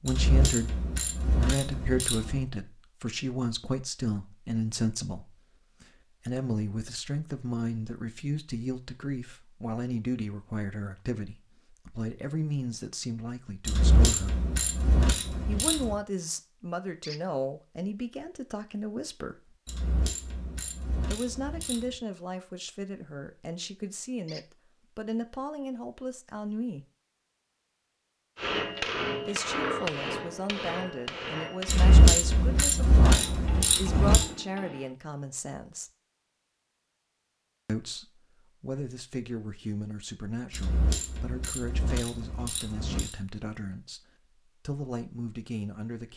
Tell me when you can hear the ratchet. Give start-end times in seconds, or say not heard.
0.1-2.5, 13.7-15.9, 19.6-21.9, 31.6-34.2, 40.5-43.1.